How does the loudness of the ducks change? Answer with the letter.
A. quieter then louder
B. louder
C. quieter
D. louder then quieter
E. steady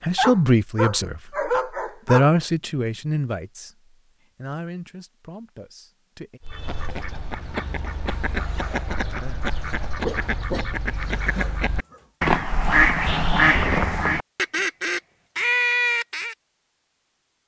B.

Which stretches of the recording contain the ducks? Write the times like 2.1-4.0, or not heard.
6.4-16.4.